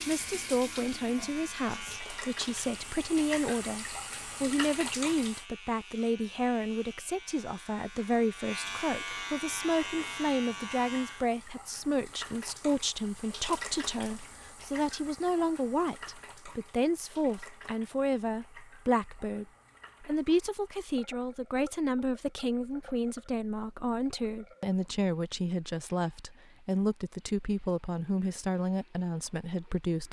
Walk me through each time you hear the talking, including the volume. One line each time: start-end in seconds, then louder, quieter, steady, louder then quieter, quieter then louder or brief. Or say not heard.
0.1-30.0 steady.